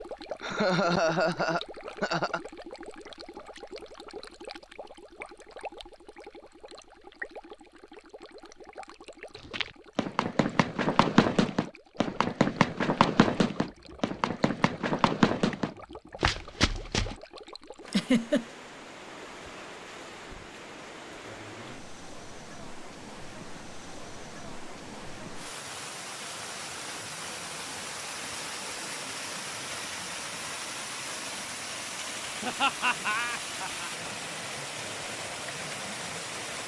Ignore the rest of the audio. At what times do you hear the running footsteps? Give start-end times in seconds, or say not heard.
9.4-17.2.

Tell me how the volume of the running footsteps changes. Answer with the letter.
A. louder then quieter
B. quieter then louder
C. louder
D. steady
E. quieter
D.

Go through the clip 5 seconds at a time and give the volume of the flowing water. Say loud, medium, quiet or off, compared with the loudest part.
medium, medium, quiet, medium, medium, loud, loud, loud.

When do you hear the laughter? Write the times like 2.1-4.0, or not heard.
0.4-2.4, 17.9-18.4, 32.4-33.9.